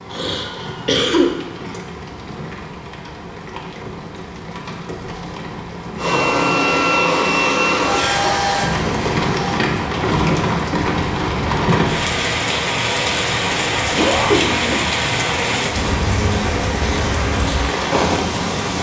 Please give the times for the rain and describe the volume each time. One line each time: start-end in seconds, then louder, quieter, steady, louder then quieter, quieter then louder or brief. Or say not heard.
0.0-18.7 louder.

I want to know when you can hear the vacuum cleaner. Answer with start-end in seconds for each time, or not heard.
6.0-9.6.